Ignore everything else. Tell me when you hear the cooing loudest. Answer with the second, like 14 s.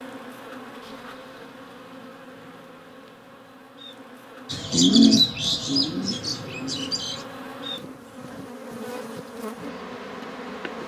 5 s.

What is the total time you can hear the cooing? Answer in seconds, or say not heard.
3 s.